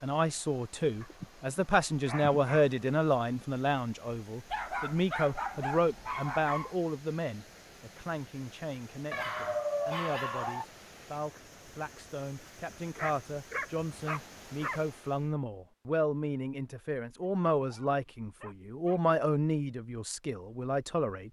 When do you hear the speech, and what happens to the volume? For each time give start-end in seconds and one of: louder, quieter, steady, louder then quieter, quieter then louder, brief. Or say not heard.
0.0-21.2 quieter then louder.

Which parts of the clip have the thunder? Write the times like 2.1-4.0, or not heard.
not heard.